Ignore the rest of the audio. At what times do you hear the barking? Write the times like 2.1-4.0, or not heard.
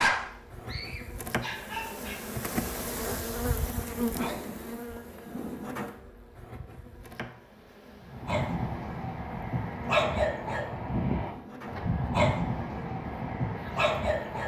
0.0-2.3, 8.0-14.4.